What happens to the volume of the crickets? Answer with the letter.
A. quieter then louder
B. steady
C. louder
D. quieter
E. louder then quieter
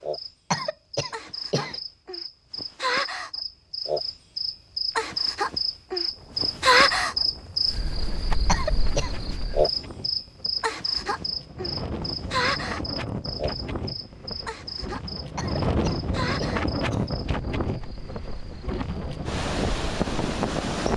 E.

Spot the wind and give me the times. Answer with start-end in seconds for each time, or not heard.
6.0-20.9.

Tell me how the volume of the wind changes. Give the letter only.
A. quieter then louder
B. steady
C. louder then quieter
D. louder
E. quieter
D.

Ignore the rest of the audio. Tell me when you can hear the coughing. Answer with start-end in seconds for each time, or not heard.
0.5-1.8, 8.4-9.1, 15.3-17.1.